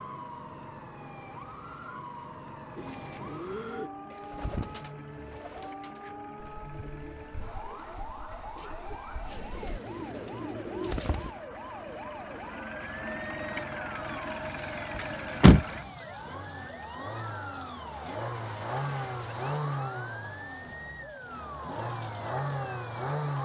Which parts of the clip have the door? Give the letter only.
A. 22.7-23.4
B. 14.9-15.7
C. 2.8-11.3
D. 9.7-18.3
B.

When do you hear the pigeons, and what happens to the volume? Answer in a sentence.
The pigeons can be heard from 2.8 to 11.3 s, getting quieter then louder.